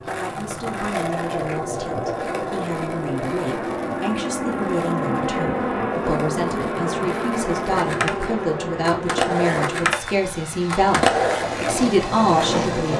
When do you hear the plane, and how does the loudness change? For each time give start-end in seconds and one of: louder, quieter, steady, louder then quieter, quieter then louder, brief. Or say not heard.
0.0-12.9 louder then quieter.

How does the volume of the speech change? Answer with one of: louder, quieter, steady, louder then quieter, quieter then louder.
louder.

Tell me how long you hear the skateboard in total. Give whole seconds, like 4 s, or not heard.
13 s.